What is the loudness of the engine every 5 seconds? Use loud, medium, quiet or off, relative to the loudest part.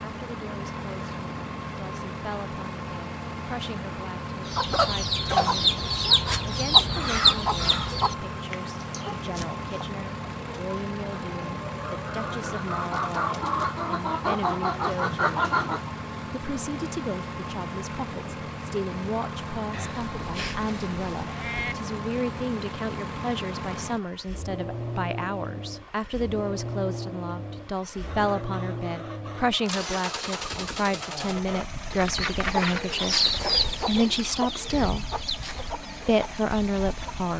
loud, loud, loud, loud, loud, loud, loud, medium.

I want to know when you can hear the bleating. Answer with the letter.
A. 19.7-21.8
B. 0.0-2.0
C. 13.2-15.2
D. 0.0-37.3
A.